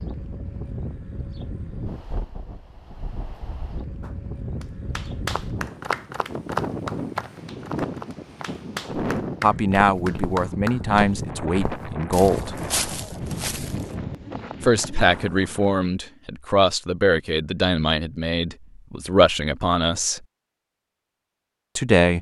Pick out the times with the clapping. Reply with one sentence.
You can hear the clapping from 4.0 to 11.1 s.